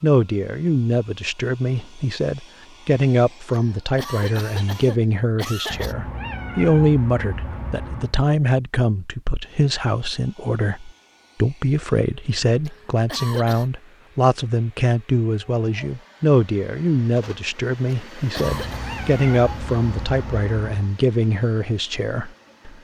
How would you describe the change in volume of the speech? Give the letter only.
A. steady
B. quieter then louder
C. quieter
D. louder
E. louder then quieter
A.